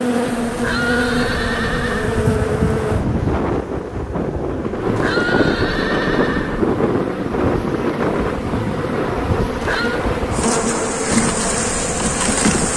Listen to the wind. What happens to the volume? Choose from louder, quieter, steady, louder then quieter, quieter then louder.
louder then quieter.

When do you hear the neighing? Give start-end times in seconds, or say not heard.
0.5-2.2, 4.8-6.6, 9.5-10.1.